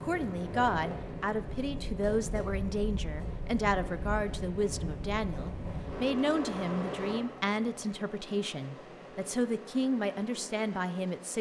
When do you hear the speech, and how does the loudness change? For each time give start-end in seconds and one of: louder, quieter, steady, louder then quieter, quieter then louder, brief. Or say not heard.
0.0-11.3 steady.